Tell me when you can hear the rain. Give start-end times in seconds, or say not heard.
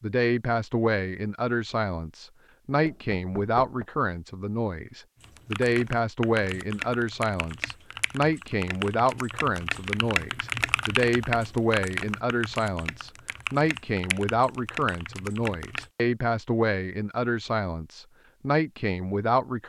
not heard.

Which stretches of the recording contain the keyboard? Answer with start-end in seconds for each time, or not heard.
5.2-15.9.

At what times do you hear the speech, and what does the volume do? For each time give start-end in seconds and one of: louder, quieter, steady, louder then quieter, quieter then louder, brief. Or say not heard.
0.0-19.6 steady.